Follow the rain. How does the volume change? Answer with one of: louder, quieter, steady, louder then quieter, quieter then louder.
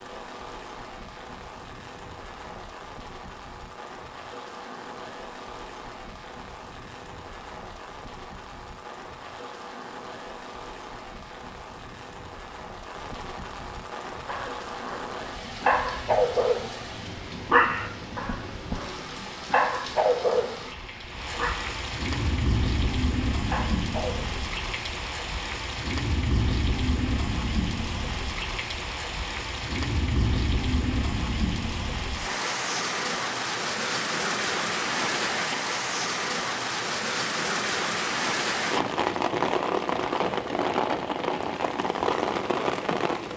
louder.